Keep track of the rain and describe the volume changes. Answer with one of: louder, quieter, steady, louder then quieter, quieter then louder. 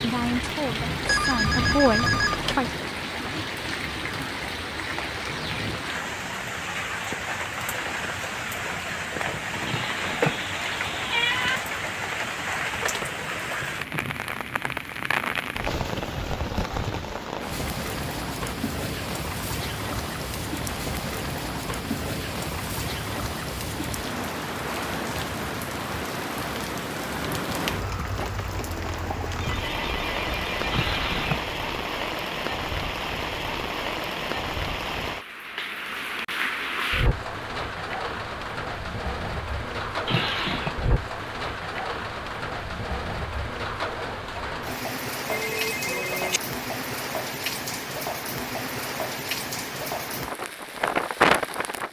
steady.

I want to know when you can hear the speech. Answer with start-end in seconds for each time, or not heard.
0.0-2.8.